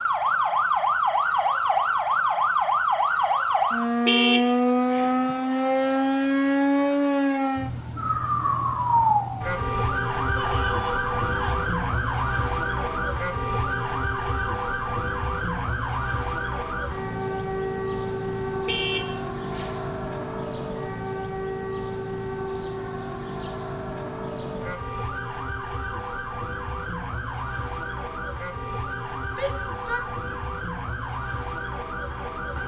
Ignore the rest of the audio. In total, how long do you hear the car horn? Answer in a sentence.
The car horn can be heard for 2 seconds in total.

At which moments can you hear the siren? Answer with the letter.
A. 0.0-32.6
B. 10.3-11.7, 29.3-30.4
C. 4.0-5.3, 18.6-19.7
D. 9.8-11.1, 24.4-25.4
A.